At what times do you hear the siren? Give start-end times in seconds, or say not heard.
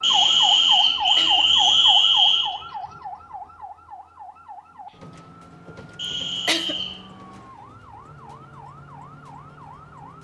0.0-10.1.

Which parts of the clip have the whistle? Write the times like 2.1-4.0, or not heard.
0.0-2.5, 6.0-7.0.